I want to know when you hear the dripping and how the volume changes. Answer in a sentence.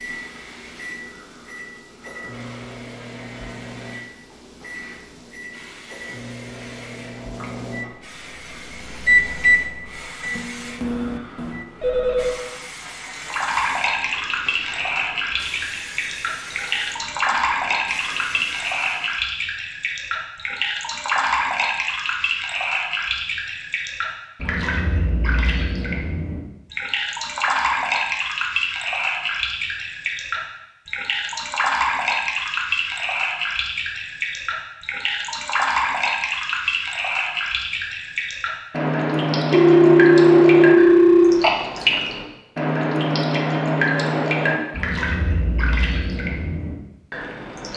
The dripping can be heard from 13.1 to 47.7 s, at a steady volume.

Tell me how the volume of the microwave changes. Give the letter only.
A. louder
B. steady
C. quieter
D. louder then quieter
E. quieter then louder
A.